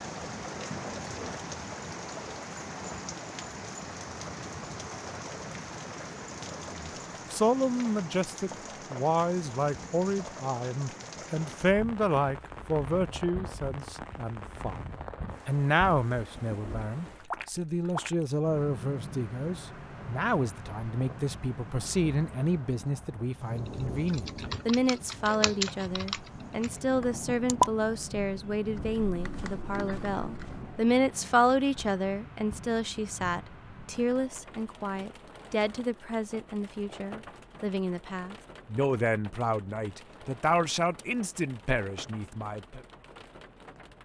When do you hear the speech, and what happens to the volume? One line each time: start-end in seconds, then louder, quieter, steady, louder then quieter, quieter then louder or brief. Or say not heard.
6.6-42.8 steady.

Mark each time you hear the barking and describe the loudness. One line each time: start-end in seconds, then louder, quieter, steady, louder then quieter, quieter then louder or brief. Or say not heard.
not heard.